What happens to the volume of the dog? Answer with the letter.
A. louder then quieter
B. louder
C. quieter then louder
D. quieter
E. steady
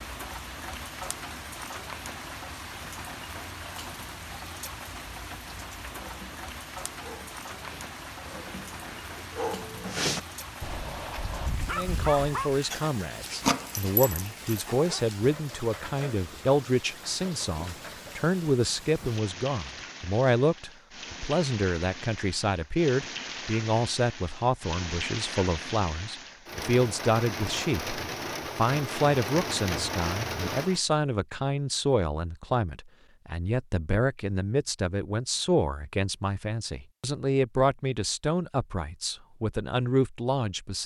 B.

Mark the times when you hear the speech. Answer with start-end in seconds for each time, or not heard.
11.7-40.8.